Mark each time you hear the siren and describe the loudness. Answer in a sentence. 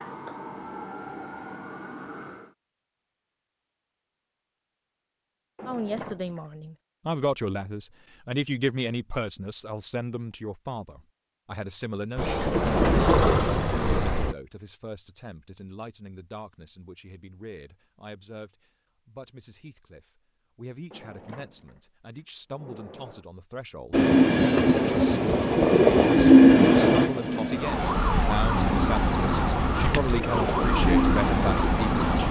You can hear the siren briefly from 0.0 to 2.5 s; and from 27.6 to 32.2 s, at a steady volume.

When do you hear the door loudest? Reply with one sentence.
The volume of the door peaks at 6 seconds.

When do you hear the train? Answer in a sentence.
The train can be heard from 12.2 to 14.3 s and from 23.9 to 32.2 s.